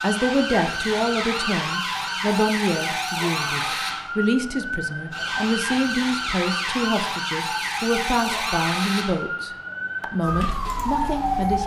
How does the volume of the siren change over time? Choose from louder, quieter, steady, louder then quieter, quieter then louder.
steady.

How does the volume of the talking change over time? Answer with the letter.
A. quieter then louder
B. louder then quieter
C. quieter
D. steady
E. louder
D.